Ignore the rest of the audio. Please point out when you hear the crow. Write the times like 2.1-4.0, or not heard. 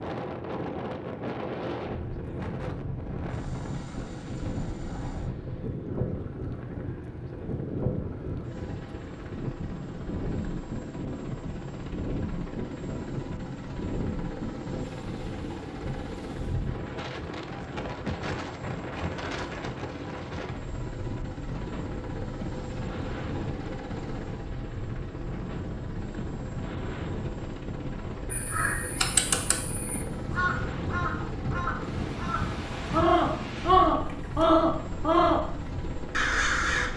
28.3-36.9.